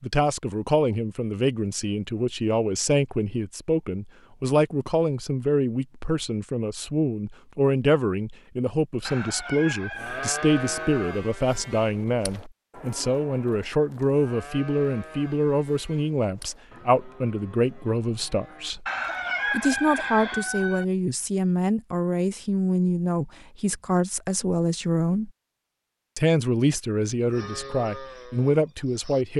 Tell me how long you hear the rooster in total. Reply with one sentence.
You can hear the rooster for 4 seconds altogether.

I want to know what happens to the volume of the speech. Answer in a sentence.
The loudness of the speech stays about the same.